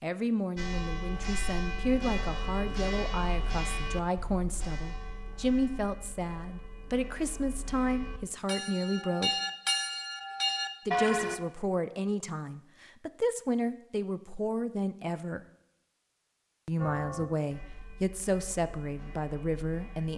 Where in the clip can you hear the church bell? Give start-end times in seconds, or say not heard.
0.6-11.4, 16.8-20.1.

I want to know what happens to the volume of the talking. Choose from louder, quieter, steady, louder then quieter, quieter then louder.
steady.